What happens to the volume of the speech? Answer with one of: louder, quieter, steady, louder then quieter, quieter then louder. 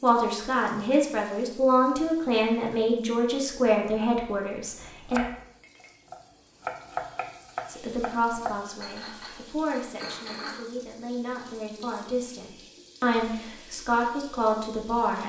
quieter then louder.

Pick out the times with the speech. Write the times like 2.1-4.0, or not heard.
0.0-5.2, 7.7-15.2.